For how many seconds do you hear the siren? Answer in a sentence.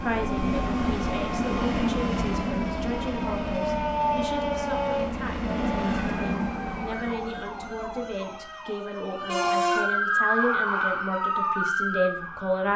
The siren can be heard for 13 seconds in total.